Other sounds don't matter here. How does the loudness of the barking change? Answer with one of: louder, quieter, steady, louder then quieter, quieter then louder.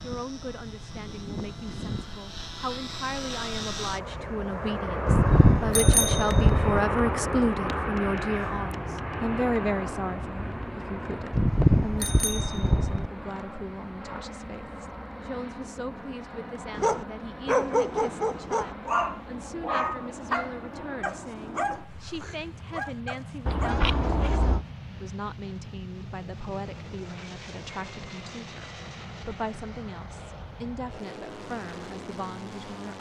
quieter.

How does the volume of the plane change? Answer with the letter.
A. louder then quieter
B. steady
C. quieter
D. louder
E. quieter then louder
C.